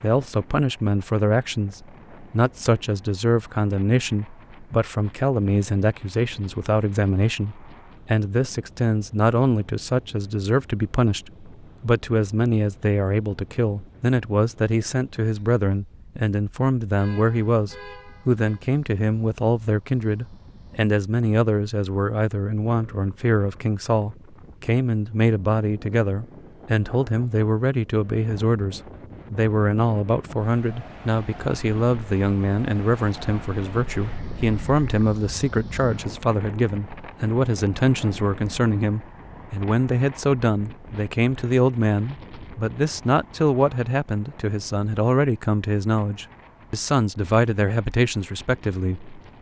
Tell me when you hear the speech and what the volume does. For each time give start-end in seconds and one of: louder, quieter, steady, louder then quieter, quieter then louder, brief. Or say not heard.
0.0-49.1 steady.